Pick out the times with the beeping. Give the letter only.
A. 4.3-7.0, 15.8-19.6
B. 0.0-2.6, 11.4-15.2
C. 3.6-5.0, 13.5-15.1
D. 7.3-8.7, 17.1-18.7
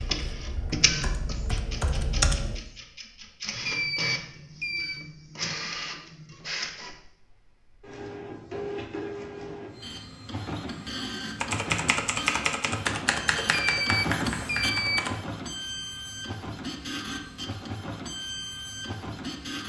C.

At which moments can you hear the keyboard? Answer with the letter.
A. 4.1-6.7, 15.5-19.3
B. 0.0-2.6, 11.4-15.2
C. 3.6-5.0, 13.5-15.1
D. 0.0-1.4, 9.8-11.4
B.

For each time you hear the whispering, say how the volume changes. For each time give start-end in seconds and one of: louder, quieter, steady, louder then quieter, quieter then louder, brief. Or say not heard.
not heard.